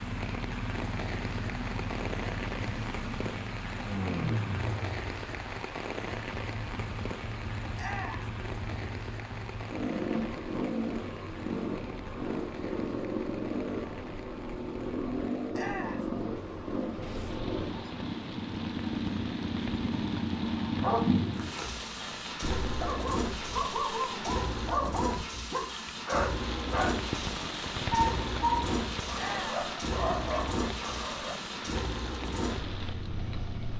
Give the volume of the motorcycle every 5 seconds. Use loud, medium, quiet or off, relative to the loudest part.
loud, medium, loud, loud, loud, loud, loud.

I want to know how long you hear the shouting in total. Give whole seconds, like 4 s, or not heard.
2 s.